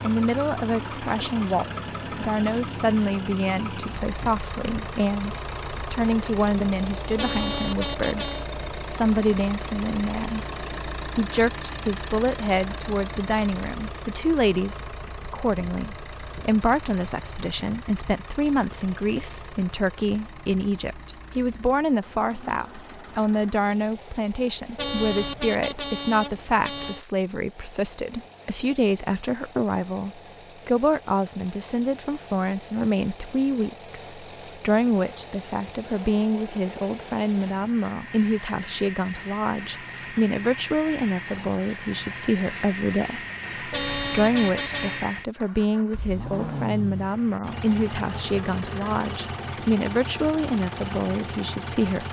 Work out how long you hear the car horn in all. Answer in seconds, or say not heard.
5 s.